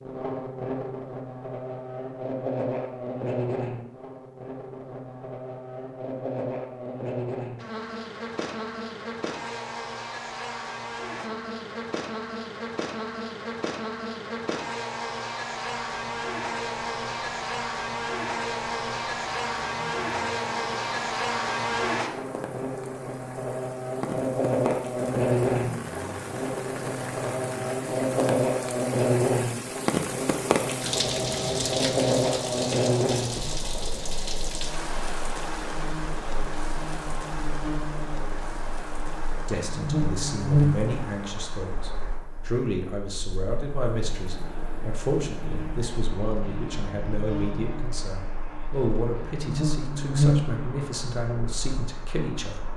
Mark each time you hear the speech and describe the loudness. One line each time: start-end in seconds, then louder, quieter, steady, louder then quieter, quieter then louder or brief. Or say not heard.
39.5-52.7 steady.